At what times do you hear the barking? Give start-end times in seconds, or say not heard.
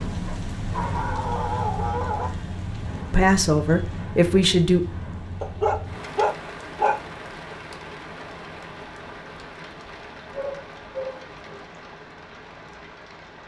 0.2-2.3, 5.4-7.0, 10.3-11.8.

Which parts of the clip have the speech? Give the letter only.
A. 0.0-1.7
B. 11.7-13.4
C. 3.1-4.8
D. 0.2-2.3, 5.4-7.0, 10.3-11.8
C.